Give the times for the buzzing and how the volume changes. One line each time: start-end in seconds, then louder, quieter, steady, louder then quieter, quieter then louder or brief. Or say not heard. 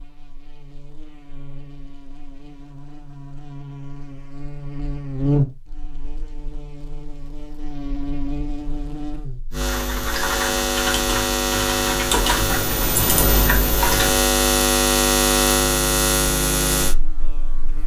0.0-17.8 louder.